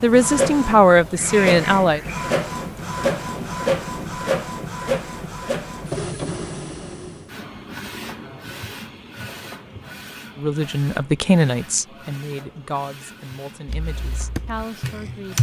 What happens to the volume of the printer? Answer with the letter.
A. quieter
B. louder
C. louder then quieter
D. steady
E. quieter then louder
A.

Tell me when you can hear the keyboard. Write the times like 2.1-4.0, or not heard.
13.7-15.3.